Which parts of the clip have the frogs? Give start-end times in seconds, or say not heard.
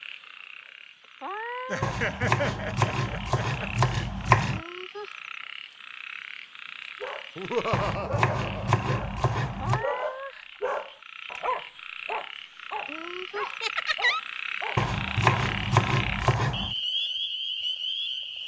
0.0-18.4.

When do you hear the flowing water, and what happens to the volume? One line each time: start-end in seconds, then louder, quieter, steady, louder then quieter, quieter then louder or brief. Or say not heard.
not heard.